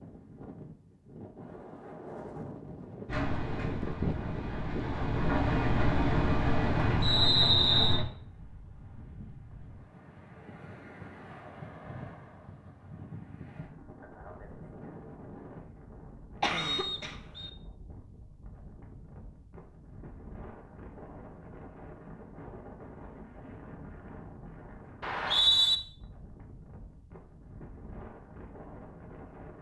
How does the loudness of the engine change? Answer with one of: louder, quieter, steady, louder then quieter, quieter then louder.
louder.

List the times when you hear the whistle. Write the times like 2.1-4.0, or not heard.
7.0-8.1, 16.6-17.5, 25.0-25.8.